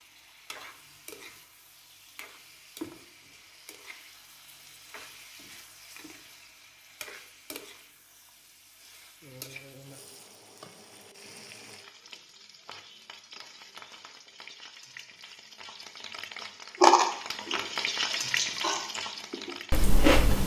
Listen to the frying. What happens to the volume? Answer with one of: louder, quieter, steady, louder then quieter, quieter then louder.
louder.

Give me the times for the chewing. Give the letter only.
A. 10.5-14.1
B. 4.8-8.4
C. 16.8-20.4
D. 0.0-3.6
C.